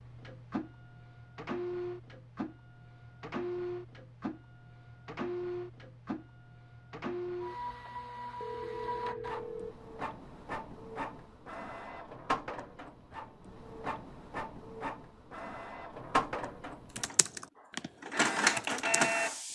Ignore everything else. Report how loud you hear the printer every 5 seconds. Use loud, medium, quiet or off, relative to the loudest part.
medium, medium, medium, loud.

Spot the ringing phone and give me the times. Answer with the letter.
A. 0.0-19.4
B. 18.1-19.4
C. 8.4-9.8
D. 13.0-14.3
C.